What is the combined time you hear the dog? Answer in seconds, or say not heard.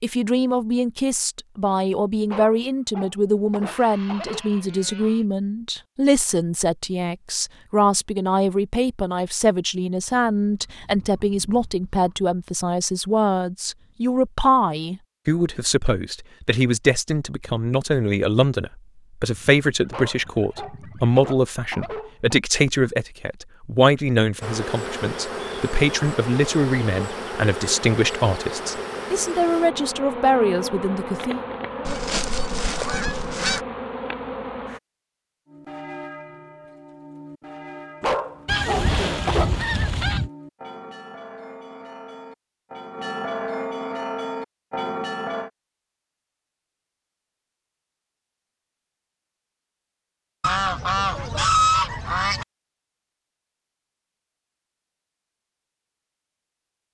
6 s.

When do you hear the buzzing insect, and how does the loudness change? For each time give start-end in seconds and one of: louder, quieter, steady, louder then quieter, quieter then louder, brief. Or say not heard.
24.4-34.8 steady.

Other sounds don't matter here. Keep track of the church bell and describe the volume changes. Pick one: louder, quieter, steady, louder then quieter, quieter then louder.
louder.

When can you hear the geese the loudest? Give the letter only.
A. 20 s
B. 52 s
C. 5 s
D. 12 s
B.